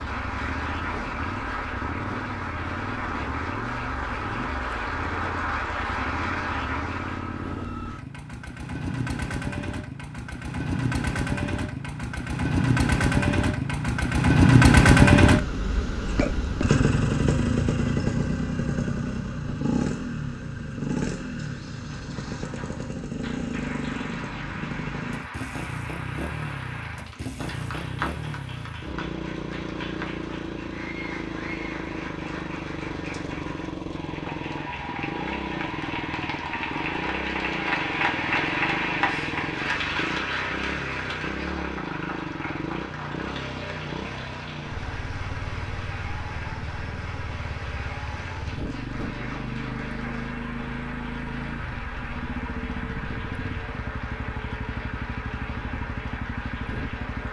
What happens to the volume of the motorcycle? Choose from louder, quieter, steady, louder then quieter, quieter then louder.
louder then quieter.